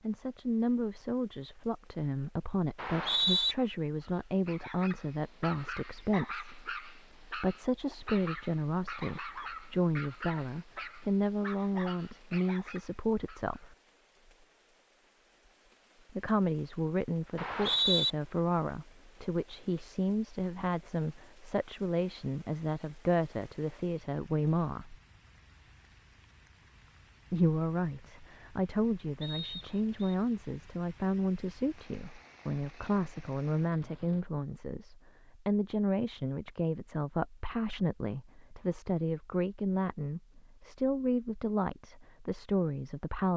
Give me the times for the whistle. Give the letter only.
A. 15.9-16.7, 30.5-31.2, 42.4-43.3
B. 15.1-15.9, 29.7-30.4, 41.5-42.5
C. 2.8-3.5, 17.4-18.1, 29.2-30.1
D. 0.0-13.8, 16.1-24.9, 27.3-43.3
C.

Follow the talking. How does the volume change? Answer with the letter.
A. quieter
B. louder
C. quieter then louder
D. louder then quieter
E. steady
E.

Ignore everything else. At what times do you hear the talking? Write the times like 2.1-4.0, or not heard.
0.0-13.8, 16.1-24.9, 27.3-43.3.